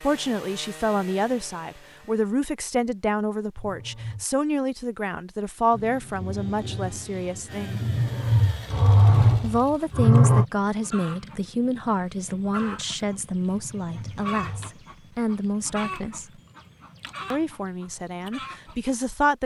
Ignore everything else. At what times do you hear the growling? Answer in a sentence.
You can hear the growling from 3.5 to 4.2 s, from 7.8 to 10.4 s and from 13.4 to 14.8 s.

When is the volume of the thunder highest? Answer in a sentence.
The loudest moment of the thunder is at 8 seconds.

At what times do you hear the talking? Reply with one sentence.
You can hear the talking from 0.0 to 7.8 s, from 9.4 to 16.2 s and from 17.3 to 19.3 s.